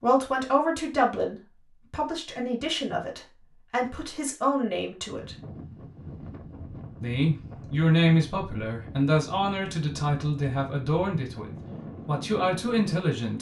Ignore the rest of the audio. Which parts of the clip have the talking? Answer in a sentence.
The talking can be heard from 0.0 to 5.3 s and from 7.0 to 13.3 s.